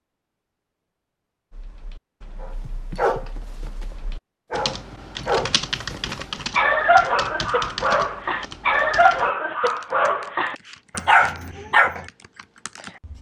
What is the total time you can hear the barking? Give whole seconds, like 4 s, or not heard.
10 s.